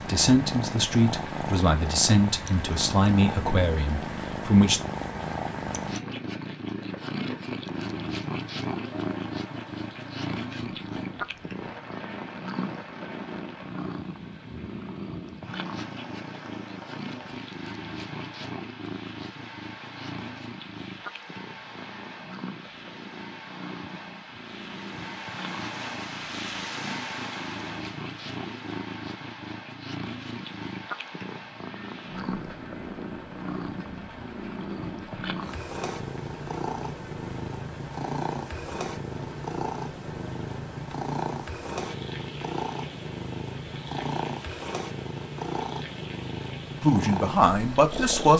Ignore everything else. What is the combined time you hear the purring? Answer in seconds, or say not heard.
48 s.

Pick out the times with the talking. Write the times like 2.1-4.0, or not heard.
0.1-4.8, 46.8-48.3.